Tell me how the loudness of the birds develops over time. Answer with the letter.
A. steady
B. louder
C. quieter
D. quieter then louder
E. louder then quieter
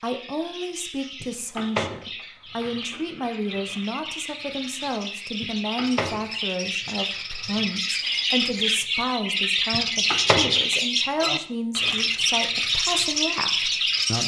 B.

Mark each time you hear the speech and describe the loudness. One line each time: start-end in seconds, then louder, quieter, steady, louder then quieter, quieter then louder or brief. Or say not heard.
0.0-14.2 steady.